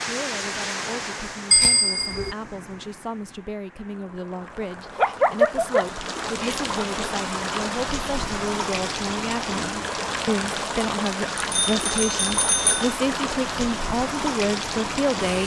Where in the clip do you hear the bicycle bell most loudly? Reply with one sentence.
The loudest moment of the bicycle bell is at 2 seconds.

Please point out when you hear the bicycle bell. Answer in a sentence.
You can hear the bicycle bell from 1.5 to 2.4 s and from 11.5 to 12.9 s.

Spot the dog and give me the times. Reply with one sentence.
You can hear the dog from 5.0 to 6.5 s.